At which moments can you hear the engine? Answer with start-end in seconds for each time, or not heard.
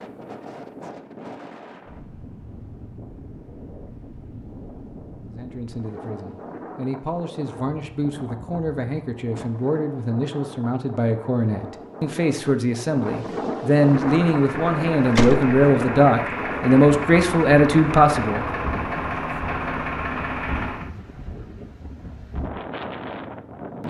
13.8-20.9.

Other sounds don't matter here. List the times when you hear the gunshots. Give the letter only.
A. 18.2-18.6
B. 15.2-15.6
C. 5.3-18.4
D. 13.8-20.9
B.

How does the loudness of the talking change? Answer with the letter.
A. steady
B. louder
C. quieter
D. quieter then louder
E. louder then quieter
B.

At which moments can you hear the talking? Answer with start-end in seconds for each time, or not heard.
5.3-18.4.